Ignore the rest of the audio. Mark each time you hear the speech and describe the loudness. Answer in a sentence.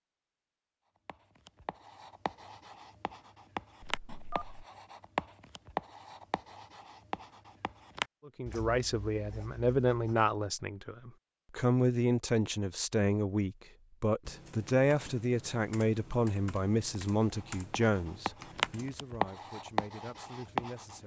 The speech can be heard from 8.2 to 21.0 s, getting quieter.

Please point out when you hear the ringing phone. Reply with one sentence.
The ringing phone can be heard from 3.8 to 4.7 s.